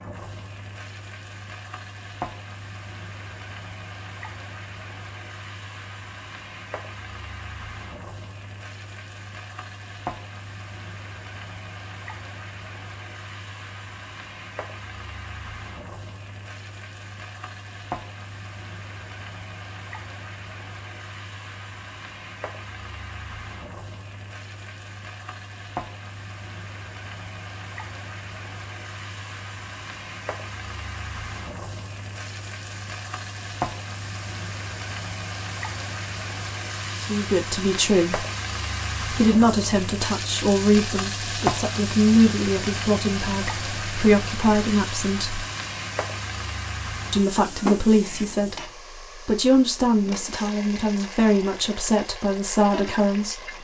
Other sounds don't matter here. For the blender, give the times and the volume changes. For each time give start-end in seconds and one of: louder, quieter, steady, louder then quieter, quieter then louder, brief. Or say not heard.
not heard.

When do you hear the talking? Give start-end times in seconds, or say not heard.
37.0-38.2, 39.1-45.4, 47.1-53.4.